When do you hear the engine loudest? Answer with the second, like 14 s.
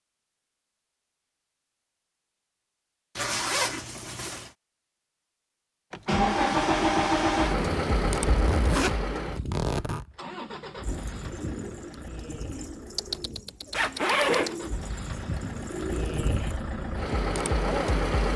7 s.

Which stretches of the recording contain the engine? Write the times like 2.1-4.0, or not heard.
5.9-18.3.